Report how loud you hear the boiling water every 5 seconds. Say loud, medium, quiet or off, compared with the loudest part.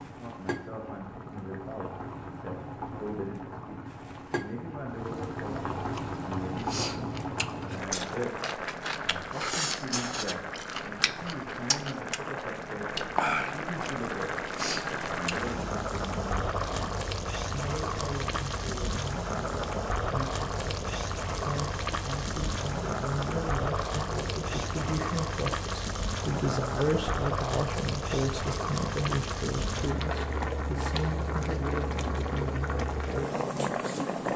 medium, loud, loud, loud, loud, loud, loud.